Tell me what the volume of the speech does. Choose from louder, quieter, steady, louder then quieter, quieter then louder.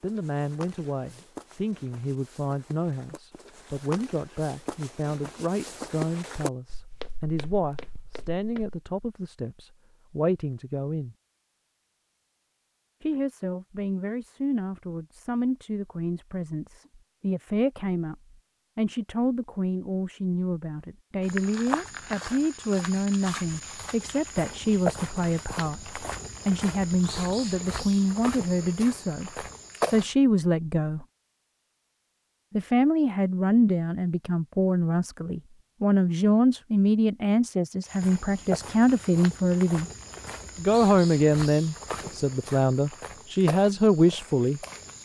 louder.